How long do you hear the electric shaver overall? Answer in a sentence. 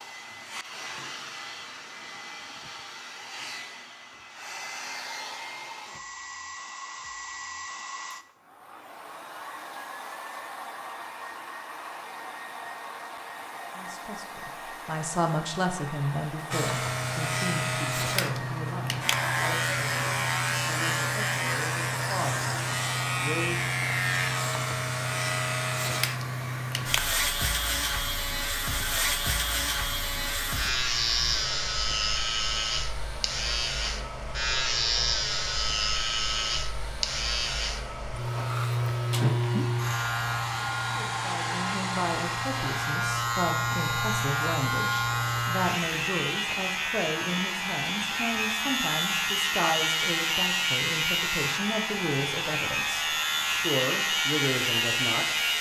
You can hear the electric shaver for 39 seconds altogether.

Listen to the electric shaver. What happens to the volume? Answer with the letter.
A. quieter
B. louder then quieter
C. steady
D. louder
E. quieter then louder
C.